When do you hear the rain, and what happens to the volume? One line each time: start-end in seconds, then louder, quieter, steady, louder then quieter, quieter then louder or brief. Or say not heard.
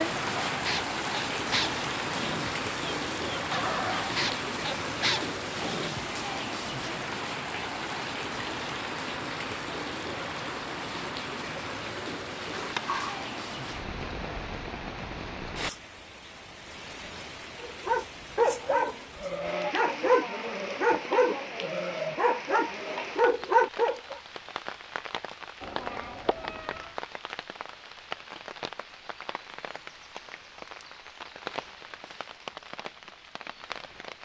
0.0-34.2 quieter.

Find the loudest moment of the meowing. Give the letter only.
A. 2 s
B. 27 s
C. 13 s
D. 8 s
C.